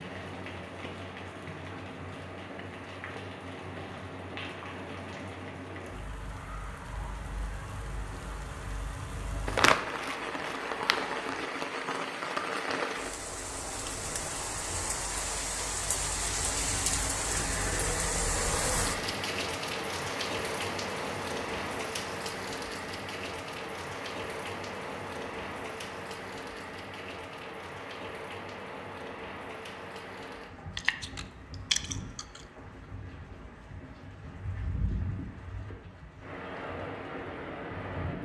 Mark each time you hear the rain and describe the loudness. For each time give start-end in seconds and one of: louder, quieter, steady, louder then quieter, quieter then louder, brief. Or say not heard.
0.0-38.2 louder then quieter.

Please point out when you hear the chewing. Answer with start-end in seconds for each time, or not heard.
9.4-11.5, 30.8-32.4.